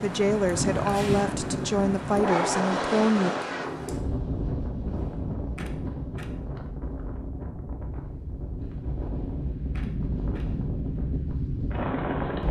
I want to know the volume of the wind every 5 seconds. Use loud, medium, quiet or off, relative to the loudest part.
loud, medium, loud.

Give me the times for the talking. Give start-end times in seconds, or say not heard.
0.0-3.3.